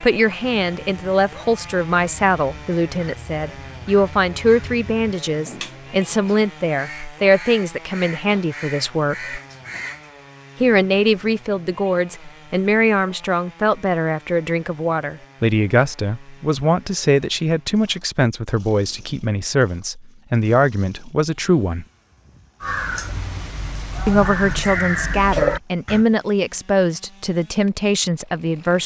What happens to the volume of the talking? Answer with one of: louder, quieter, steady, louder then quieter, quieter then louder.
steady.